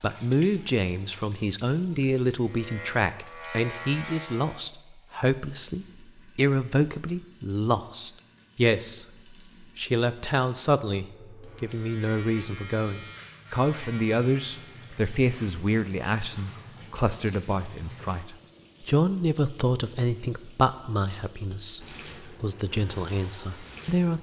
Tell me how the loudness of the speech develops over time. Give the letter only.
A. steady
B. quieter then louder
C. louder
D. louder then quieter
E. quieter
A.